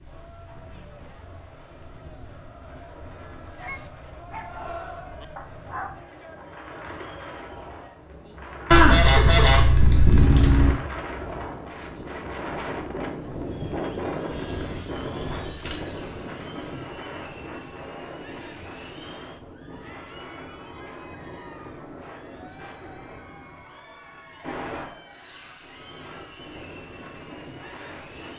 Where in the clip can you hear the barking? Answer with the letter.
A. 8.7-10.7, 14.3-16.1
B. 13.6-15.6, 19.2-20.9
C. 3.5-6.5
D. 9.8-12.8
C.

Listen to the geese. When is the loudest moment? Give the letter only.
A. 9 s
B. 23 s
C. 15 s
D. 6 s
A.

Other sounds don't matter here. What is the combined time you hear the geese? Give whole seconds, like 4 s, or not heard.
4 s.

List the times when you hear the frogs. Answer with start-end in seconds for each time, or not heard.
not heard.